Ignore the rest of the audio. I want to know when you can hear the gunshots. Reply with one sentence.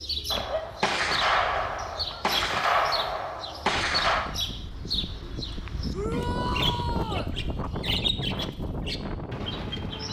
You can hear the gunshots from 0.3 to 4.3 s.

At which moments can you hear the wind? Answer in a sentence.
The wind can be heard from 3.6 to 10.0 s.